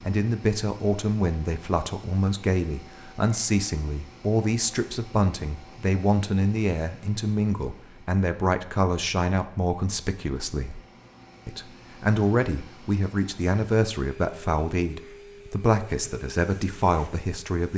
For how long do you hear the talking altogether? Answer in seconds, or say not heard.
17 s.